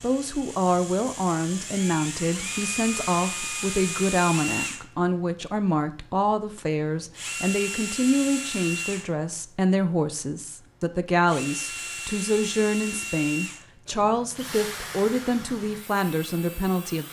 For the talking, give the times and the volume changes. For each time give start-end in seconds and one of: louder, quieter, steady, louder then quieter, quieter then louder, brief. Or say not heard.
0.0-17.0 steady.